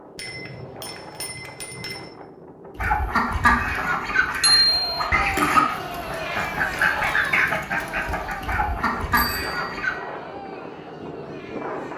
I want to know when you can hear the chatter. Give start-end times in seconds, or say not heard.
4.7-11.9.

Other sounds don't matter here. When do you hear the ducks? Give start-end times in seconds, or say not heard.
2.8-10.0.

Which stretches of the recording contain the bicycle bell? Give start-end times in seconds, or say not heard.
0.1-2.1, 4.4-4.8, 9.1-10.2.